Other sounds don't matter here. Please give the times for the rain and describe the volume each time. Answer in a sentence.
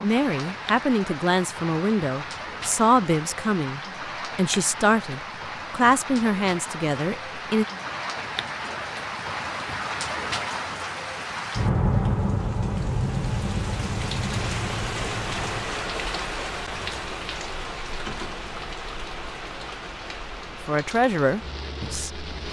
You can hear the rain from 0.0 to 22.4 s, getting louder then quieter.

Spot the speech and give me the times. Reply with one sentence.
You can hear the speech from 0.0 to 7.7 s and from 20.6 to 22.2 s.